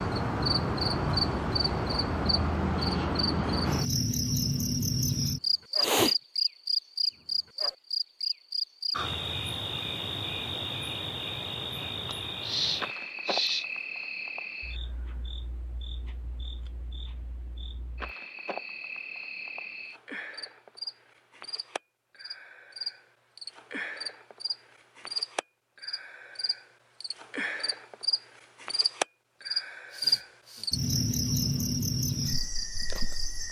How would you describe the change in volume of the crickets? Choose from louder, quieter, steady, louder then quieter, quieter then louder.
quieter then louder.